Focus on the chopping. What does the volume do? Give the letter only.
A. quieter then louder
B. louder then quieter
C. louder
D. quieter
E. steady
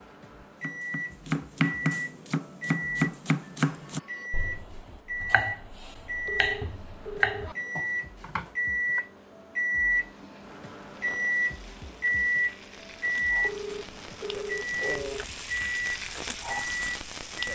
A.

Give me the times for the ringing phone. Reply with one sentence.
You can hear the ringing phone from 3.6 to 4.3 s, from 6.2 to 7.7 s and from 13.4 to 15.2 s.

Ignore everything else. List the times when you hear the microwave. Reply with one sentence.
You can hear the microwave from 0.0 to 17.4 s.